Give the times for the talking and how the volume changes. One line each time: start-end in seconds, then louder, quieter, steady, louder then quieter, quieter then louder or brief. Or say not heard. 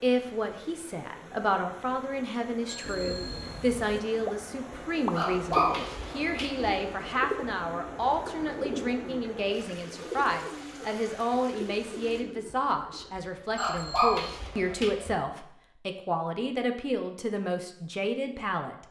0.0-18.8 steady.